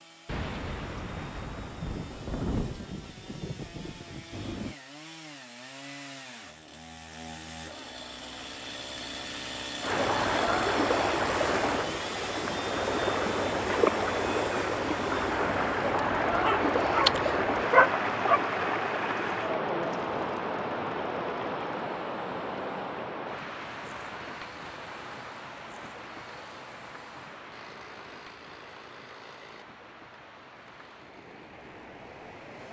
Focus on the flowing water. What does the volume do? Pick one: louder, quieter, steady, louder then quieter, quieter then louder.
quieter.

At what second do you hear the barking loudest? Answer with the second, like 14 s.
18 s.